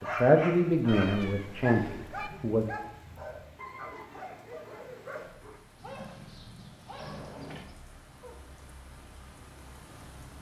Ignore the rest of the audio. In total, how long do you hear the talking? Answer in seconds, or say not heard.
3 s.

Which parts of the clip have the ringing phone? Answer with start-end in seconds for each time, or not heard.
not heard.